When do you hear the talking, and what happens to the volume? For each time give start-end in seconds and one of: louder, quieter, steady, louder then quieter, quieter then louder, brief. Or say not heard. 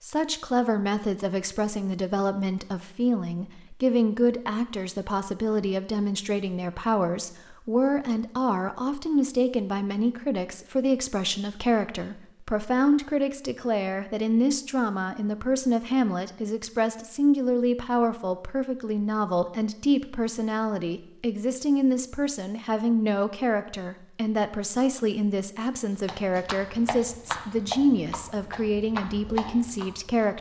0.0-30.3 steady.